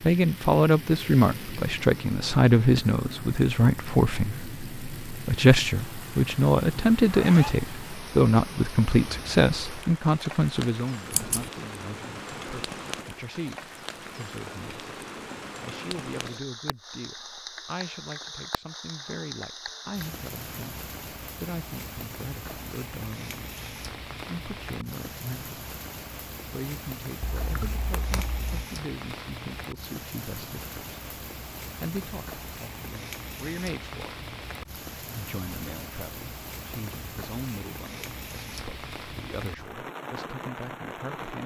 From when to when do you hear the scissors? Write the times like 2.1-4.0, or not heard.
11.1-11.5, 27.2-28.6.